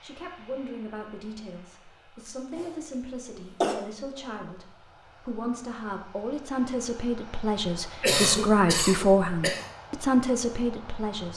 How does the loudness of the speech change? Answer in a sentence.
The volume of the speech goes up.